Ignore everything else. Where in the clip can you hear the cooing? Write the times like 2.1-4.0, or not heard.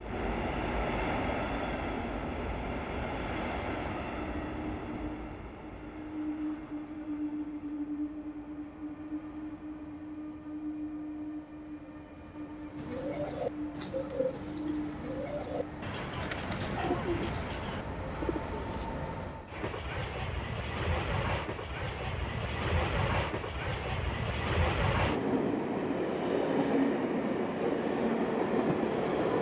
12.8-18.9.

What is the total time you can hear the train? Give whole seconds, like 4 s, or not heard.
29 s.